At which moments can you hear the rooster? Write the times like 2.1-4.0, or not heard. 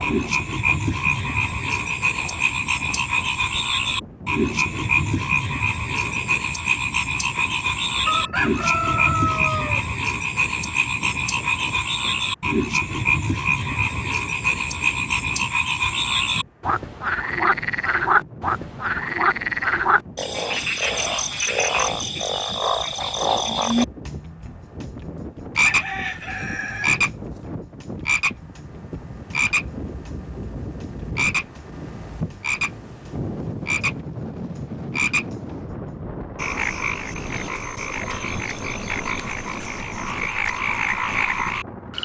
8.1-9.8, 25.6-27.4.